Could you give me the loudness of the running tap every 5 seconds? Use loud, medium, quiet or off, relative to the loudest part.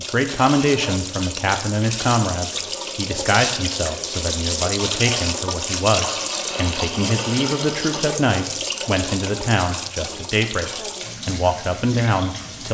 loud, loud, medium.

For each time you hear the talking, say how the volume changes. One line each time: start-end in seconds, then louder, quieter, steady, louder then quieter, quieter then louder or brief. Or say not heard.
0.0-12.6 steady.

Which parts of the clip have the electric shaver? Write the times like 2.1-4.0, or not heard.
not heard.